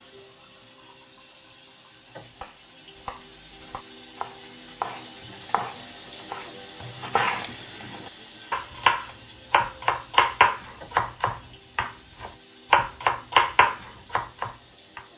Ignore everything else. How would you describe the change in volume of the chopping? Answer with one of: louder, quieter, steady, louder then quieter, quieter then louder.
louder.